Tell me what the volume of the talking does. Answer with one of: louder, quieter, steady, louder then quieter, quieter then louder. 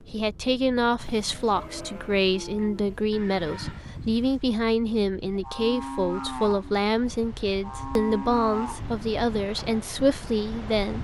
steady.